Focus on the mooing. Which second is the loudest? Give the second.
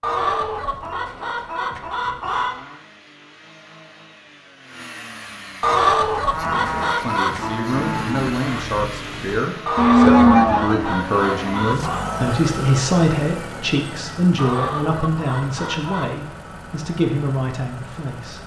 10 s.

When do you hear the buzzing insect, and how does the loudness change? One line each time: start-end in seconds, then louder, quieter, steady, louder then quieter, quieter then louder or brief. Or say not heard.
not heard.